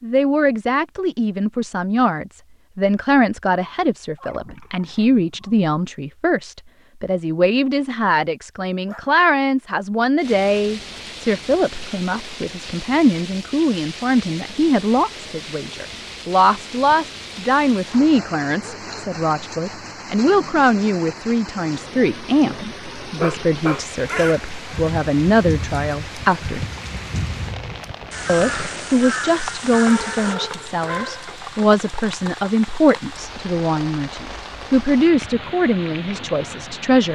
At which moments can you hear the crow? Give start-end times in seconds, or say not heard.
23.9-30.4.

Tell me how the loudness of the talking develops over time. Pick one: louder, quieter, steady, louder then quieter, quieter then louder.
steady.